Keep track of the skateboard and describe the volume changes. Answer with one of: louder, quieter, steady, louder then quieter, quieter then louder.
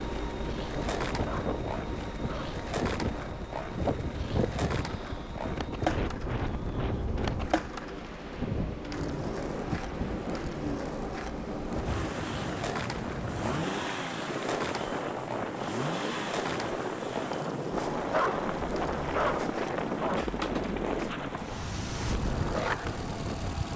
steady.